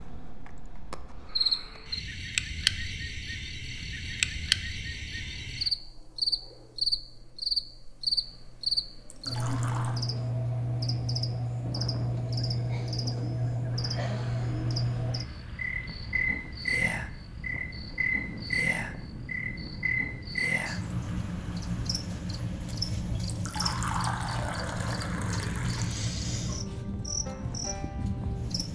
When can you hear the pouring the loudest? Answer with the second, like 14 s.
24 s.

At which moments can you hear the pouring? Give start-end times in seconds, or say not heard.
9.1-10.1, 23.2-26.0.